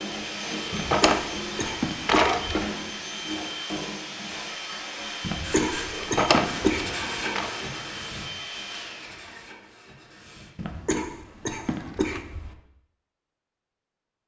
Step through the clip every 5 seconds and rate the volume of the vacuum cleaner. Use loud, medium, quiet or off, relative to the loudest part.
loud, loud, off.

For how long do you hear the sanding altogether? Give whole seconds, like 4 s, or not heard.
5 s.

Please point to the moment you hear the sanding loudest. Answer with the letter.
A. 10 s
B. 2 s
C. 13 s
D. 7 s
D.